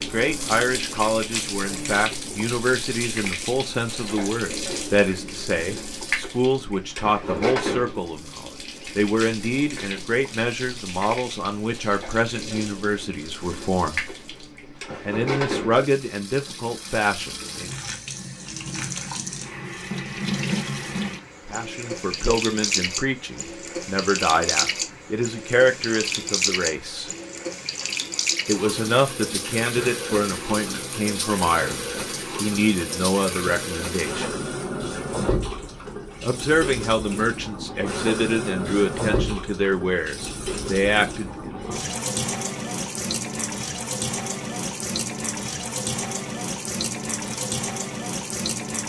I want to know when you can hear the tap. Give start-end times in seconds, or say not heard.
0.0-48.8.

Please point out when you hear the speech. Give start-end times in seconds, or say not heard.
0.0-14.0, 15.1-17.7, 21.4-27.1, 28.4-34.3, 36.2-41.6.